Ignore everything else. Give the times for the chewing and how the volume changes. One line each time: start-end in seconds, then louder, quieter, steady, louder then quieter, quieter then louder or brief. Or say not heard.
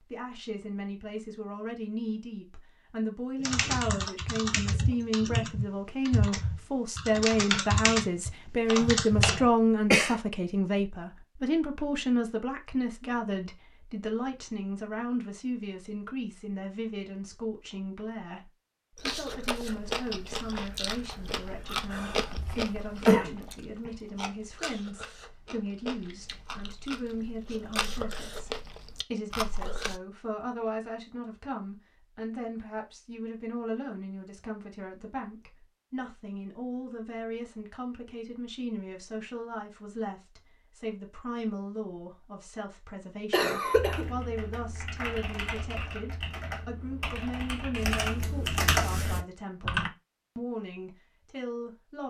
18.9-30.0 quieter then louder.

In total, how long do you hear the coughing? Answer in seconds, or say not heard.
3 s.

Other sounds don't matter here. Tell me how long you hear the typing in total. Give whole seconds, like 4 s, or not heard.
12 s.